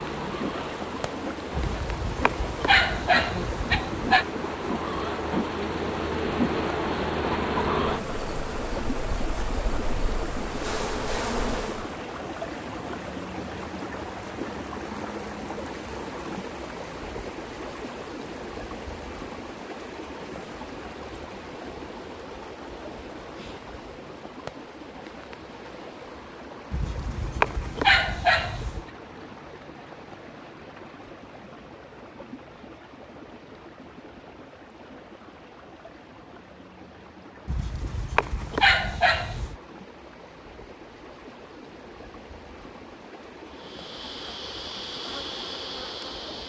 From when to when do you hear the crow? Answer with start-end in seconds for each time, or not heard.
not heard.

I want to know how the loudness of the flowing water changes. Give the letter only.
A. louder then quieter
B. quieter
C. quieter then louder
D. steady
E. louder
B.